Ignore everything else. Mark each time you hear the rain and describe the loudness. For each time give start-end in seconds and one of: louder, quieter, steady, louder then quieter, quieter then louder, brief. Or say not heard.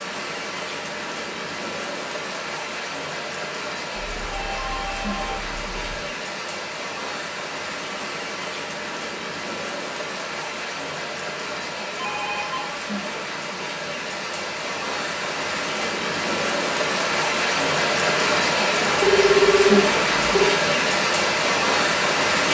0.0-22.4 louder.